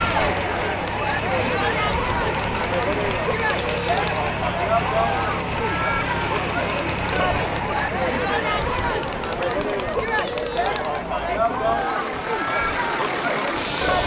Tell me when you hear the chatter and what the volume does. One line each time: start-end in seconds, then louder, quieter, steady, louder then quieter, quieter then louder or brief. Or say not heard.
0.0-14.0 steady.